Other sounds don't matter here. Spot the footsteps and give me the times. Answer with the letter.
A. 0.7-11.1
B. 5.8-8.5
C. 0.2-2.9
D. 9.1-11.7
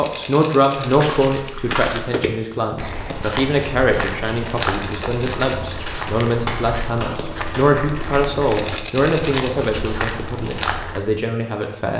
A.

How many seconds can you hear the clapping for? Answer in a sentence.
You can hear the clapping for 3 seconds altogether.